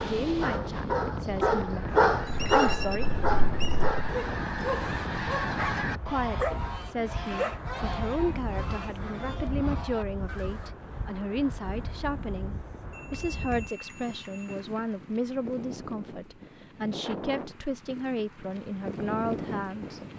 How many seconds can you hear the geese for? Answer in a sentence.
The geese can be heard for 9 seconds in total.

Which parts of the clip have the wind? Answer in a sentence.
The wind can be heard from 0.0 to 20.1 s.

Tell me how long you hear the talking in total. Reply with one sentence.
The talking can be heard for 17 seconds in total.